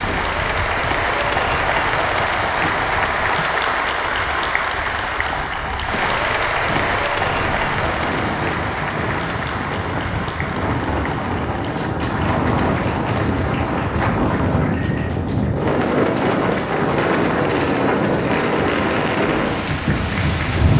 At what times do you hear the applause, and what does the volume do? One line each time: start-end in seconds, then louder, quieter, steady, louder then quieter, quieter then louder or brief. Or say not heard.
0.0-20.7 quieter.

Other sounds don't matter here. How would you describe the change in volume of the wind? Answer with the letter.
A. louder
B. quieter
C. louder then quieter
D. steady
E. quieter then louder
A.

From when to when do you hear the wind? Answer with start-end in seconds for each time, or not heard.
0.0-20.7.